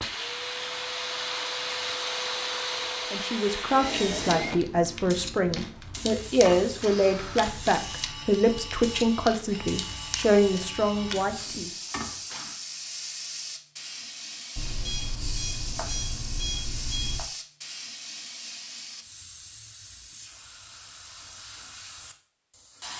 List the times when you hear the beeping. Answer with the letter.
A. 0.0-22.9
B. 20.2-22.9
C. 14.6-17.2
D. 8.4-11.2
C.